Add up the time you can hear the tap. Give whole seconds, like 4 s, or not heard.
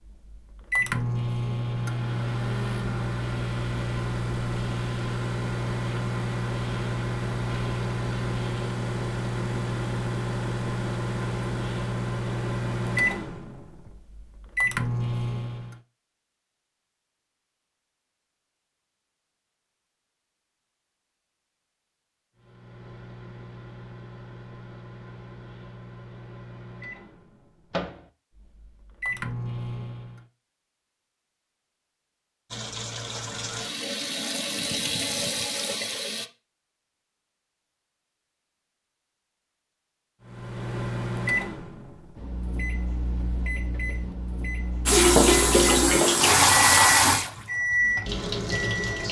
8 s.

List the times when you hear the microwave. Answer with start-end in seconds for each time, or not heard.
0.1-15.8, 22.4-30.2, 40.2-49.0.